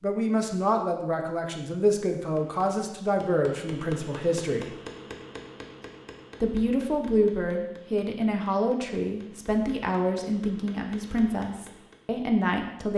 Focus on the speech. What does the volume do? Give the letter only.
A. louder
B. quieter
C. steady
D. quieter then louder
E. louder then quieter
C.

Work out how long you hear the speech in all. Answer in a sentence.
The speech can be heard for 11 seconds in total.